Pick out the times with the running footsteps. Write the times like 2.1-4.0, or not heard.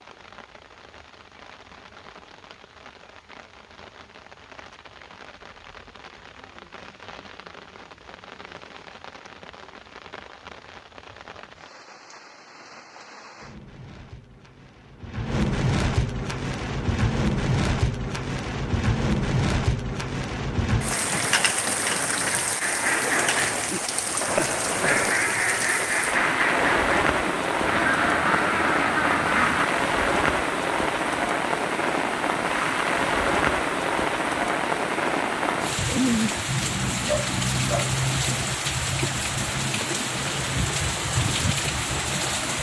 not heard.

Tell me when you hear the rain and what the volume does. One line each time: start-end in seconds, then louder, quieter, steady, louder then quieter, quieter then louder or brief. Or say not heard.
0.0-42.5 louder.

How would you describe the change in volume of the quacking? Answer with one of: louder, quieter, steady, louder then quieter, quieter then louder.
steady.